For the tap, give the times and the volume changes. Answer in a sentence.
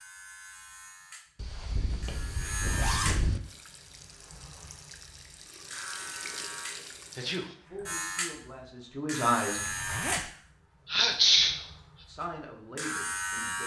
You can hear the tap from 3.4 to 7.4 s, getting louder.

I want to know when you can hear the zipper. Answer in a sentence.
You can hear the zipper from 1.4 to 3.4 s and from 9.6 to 10.2 s.